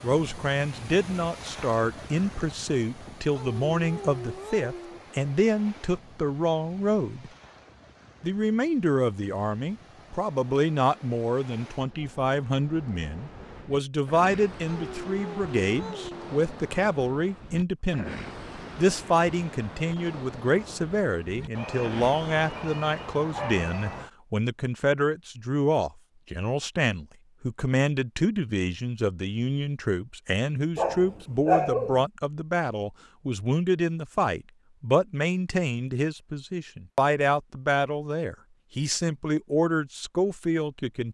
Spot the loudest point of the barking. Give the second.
32 s.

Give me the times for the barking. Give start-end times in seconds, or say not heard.
3.3-5.0, 14.7-16.2, 21.6-24.1, 30.8-32.0.